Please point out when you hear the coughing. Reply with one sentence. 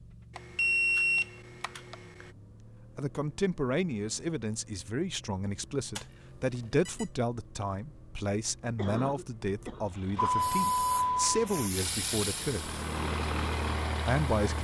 The coughing can be heard from 8.8 to 9.8 s.